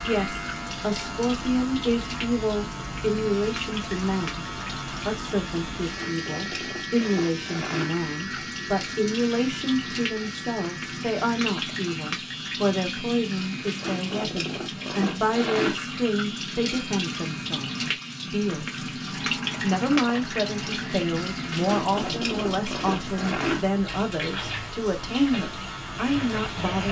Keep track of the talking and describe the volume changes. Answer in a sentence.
The volume of the talking stays about the same.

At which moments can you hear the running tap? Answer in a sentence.
The running tap can be heard from 0.0 to 26.8 s.